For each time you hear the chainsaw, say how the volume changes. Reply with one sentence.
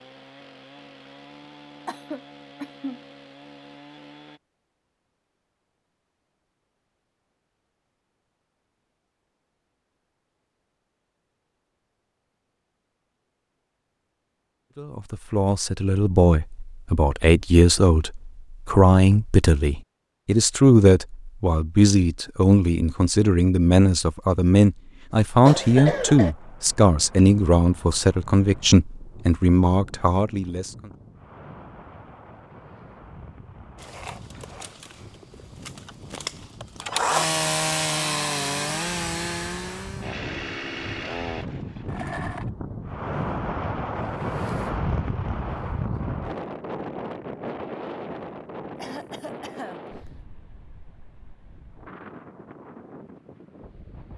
You can hear the chainsaw from 0.0 to 4.4 s, at a steady volume; and from 33.8 to 42.5 s, getting louder then quieter.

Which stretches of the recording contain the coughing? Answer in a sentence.
The coughing can be heard from 1.9 to 3.0 s, from 25.4 to 26.4 s and from 48.8 to 50.1 s.